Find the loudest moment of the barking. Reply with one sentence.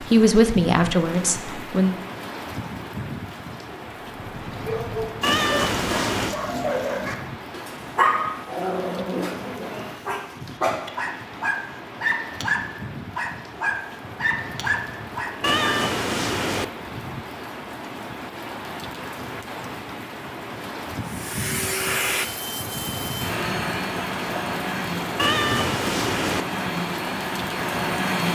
The loudest moment of the barking is at 8 seconds.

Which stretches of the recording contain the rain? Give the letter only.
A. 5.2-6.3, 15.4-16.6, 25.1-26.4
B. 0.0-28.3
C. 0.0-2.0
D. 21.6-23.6
B.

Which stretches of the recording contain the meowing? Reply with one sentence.
The meowing can be heard from 5.2 to 6.3 s, from 15.4 to 16.6 s and from 25.1 to 26.4 s.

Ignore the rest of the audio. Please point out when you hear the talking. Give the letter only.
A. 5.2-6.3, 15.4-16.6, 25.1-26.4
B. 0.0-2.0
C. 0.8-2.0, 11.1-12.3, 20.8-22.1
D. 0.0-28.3
B.